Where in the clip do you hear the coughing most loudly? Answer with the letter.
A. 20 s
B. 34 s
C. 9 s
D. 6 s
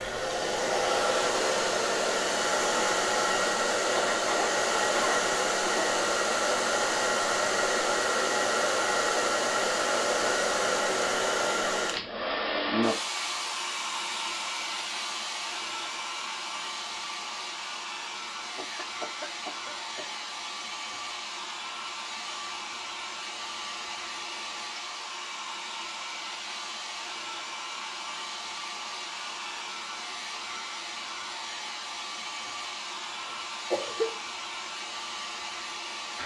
B.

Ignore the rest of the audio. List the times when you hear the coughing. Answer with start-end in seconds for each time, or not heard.
3.9-5.9, 18.6-20.1, 33.7-34.1.